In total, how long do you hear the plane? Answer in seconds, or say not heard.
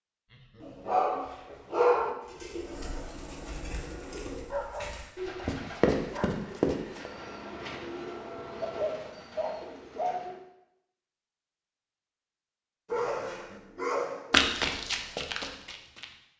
5 s.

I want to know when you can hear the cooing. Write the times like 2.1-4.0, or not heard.
2.2-10.4.